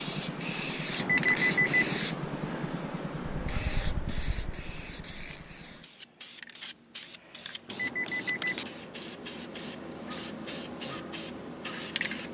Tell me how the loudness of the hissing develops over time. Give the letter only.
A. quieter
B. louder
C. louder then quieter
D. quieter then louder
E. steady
D.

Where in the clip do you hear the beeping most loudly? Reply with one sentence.
The volume of the beeping peaks at 1 second.